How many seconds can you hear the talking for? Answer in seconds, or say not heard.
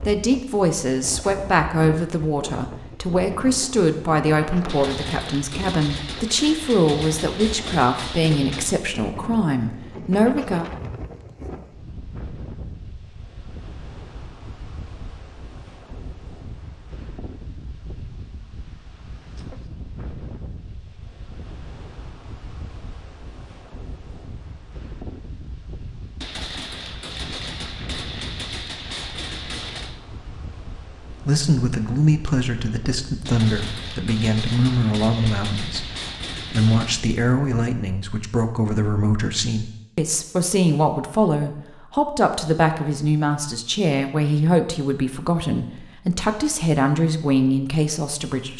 28 s.